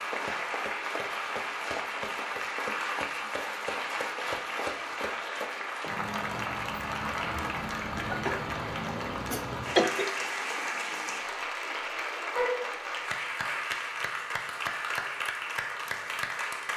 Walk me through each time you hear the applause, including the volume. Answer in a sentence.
The applause can be heard from 0.0 to 16.7 s, at a steady volume.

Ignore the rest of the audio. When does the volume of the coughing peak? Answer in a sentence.
The loudest moment of the coughing is at 10 seconds.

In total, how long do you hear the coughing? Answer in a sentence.
The coughing can be heard for 2 seconds in total.